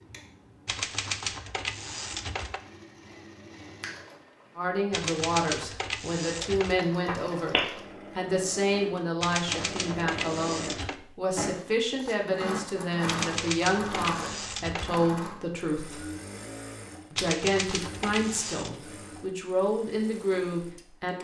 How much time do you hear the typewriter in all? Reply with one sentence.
The typewriter can be heard for 9 seconds in total.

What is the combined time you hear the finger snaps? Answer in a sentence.
You can hear the finger snaps for 2 seconds altogether.